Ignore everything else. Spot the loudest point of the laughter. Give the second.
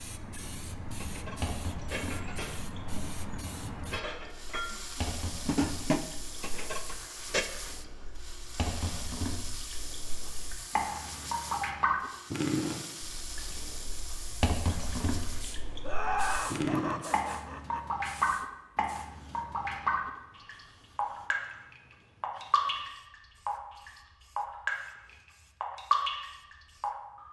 16 s.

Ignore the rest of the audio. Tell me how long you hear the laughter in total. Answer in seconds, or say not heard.
2 s.